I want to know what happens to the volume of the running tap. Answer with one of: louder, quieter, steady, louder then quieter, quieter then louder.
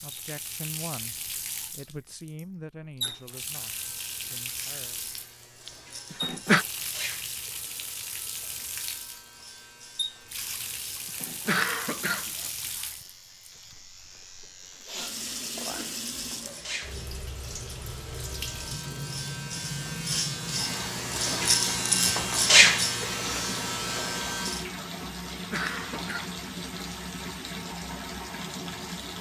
steady.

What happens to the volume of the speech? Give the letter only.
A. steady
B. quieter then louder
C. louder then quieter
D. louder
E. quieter
E.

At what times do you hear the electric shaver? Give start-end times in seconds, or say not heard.
3.6-24.6.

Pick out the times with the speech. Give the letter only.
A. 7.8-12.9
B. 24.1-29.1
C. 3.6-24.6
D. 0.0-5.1
D.